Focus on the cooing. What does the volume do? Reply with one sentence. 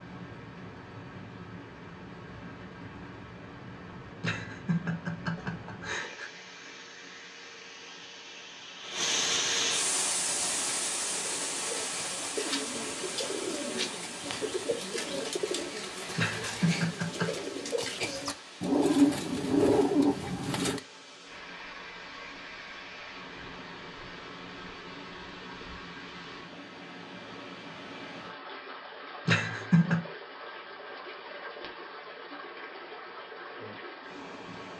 The loudness of the cooing goes up.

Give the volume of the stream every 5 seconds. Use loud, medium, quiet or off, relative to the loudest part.
medium, loud, loud, medium, medium, medium, medium.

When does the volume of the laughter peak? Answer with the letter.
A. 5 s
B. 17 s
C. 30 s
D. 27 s
C.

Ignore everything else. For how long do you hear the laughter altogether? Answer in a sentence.
You can hear the laughter for 4 seconds altogether.